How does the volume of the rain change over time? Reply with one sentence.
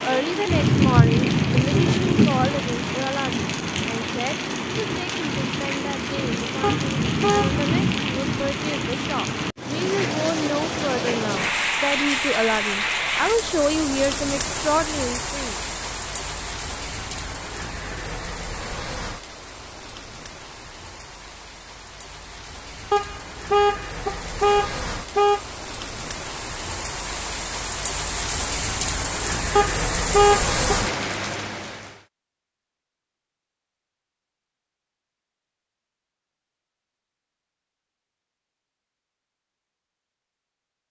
The volume of the rain goes down, then up.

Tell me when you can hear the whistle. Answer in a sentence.
You can't hear the whistle here.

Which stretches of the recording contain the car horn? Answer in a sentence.
The car horn can be heard from 6.6 to 7.6 s, from 22.9 to 25.4 s and from 29.6 to 30.9 s.